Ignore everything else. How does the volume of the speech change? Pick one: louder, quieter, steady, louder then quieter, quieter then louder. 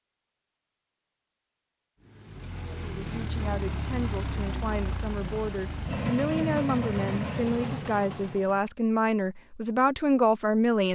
louder.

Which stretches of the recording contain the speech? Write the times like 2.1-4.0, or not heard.
2.7-10.9.